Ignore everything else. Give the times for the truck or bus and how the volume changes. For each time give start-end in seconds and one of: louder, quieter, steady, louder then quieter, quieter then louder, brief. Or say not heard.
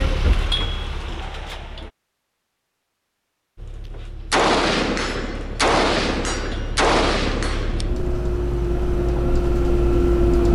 0.0-1.9 brief
3.5-10.5 louder.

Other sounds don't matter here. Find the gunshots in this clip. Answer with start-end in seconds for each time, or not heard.
4.3-7.9.